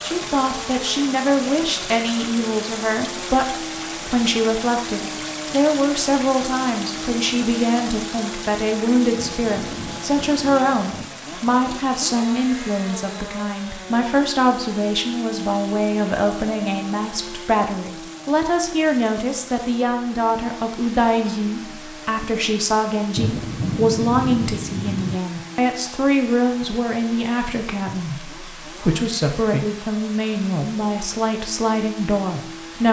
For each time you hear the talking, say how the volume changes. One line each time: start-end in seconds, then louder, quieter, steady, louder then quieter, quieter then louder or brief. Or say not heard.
0.0-32.8 steady.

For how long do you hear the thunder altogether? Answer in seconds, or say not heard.
4 s.